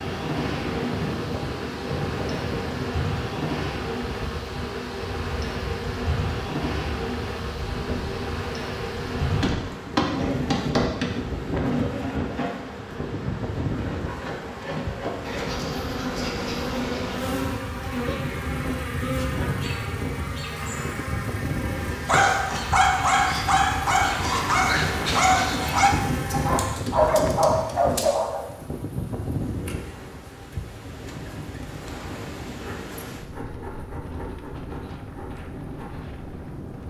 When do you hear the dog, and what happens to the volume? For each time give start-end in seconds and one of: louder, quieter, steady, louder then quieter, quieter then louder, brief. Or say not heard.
22.1-28.4 steady.